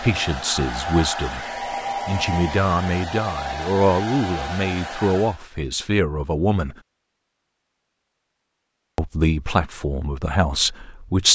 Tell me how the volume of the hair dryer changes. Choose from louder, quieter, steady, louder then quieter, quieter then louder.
steady.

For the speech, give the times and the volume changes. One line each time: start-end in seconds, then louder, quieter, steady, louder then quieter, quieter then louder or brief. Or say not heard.
0.0-6.8 steady
8.9-11.3 brief.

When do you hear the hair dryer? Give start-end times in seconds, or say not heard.
0.0-5.4.